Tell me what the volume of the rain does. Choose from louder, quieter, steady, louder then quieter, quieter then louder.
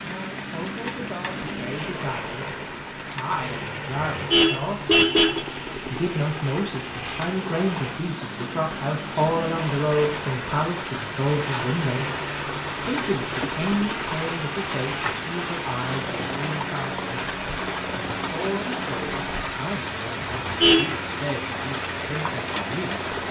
louder.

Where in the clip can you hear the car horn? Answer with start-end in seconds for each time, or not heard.
4.1-5.5, 20.2-20.9.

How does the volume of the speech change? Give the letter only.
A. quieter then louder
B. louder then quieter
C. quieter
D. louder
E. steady
B.